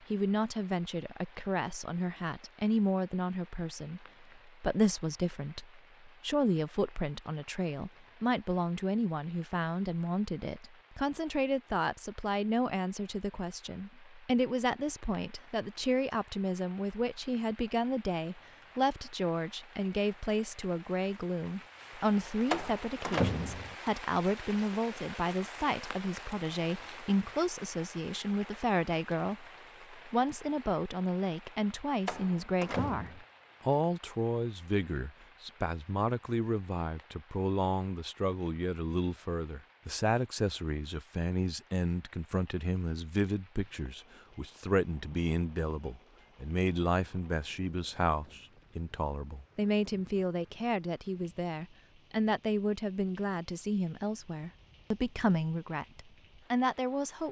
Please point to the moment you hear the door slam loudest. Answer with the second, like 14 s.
23 s.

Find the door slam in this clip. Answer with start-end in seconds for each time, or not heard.
22.5-23.8, 32.0-33.2.